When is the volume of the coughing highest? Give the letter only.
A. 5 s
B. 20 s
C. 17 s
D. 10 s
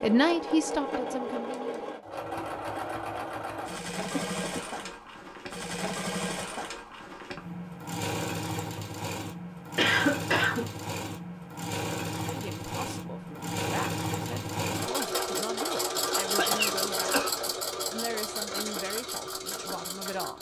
D.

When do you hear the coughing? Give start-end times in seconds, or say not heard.
4.1-4.9, 9.8-10.7, 16.3-17.4.